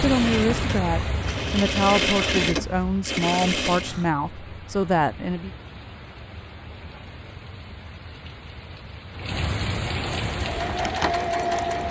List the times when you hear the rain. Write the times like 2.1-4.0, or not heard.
0.0-11.8.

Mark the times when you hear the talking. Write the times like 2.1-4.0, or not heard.
0.0-5.5.